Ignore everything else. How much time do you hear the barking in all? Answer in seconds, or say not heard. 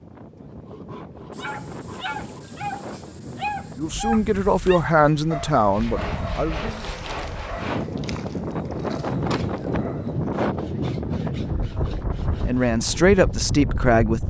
9 s.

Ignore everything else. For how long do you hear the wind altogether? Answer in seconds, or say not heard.
14 s.